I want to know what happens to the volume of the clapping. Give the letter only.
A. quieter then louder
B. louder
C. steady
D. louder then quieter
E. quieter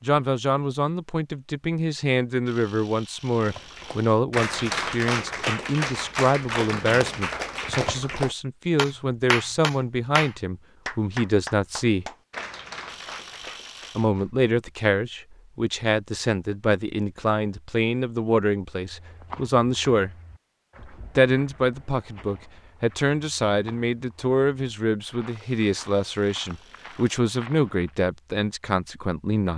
E.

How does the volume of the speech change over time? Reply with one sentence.
The volume of the speech stays about the same.